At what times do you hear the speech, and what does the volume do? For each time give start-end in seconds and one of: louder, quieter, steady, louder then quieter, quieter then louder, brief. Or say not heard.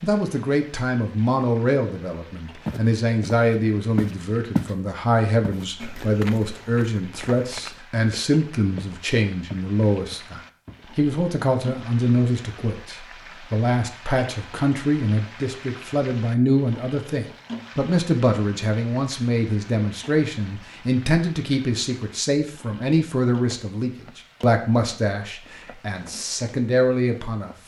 0.0-27.5 steady.